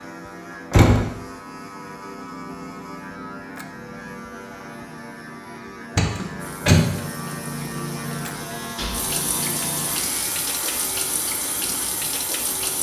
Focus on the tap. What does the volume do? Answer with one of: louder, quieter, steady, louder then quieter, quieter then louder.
louder.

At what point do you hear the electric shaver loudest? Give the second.
8 s.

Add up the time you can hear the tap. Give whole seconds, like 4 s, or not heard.
6 s.